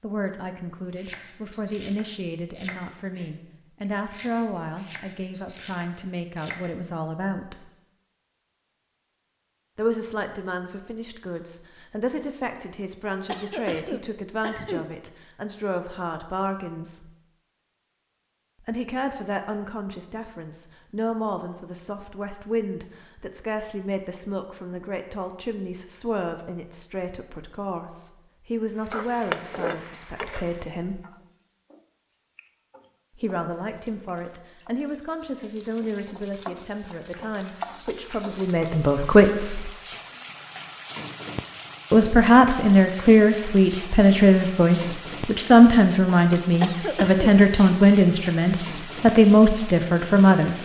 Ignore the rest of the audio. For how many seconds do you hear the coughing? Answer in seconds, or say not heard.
2 s.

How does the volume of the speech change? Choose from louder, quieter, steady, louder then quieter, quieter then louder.
louder.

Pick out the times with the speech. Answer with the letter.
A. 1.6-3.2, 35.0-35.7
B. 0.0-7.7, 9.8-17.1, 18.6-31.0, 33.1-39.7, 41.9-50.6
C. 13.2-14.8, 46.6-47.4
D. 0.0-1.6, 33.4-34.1
B.